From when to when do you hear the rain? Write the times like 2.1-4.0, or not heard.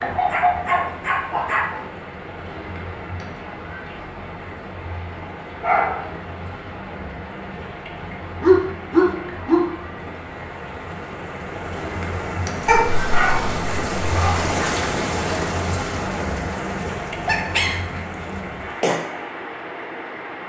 0.0-20.4.